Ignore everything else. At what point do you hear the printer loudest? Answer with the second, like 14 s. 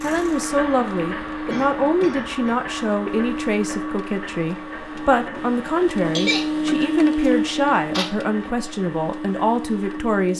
7 s.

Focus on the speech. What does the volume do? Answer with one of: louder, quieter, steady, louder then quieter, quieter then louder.
steady.